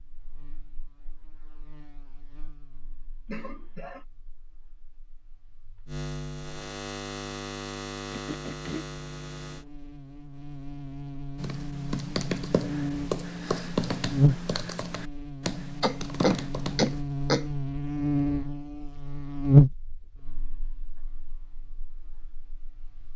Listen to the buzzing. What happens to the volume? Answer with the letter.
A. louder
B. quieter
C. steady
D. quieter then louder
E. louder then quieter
A.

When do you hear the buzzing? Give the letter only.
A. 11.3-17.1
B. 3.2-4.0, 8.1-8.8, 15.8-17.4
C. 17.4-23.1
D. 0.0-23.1
D.